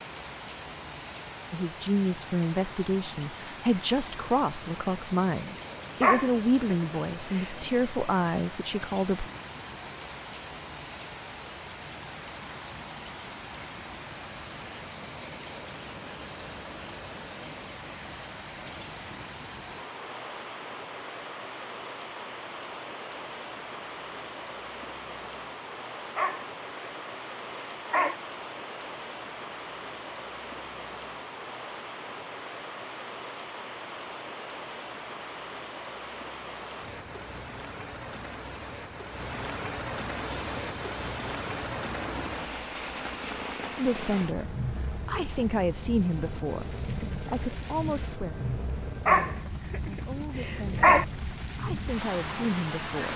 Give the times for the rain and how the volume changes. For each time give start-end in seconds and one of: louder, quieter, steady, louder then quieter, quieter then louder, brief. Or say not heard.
0.0-53.1 steady.